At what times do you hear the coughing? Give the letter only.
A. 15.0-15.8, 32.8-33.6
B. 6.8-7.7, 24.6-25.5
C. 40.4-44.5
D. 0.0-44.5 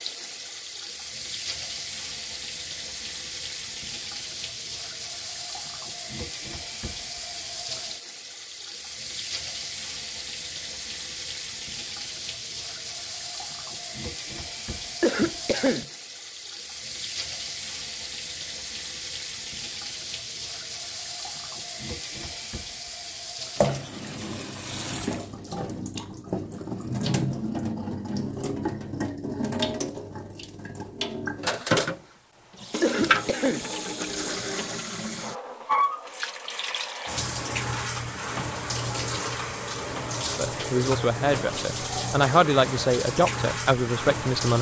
A.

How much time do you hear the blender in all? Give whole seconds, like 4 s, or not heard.
not heard.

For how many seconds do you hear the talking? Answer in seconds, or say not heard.
4 s.